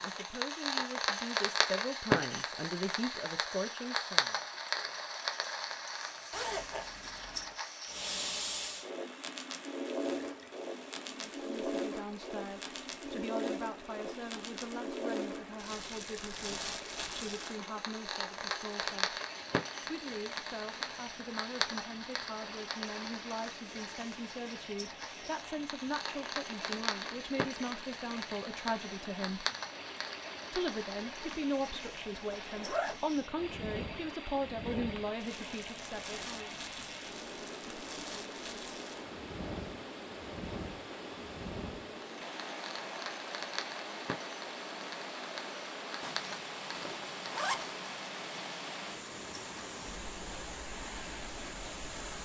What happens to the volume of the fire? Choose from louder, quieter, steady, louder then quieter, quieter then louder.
quieter.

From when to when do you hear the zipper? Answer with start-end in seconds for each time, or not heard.
6.3-7.5, 32.4-33.0, 46.0-47.9.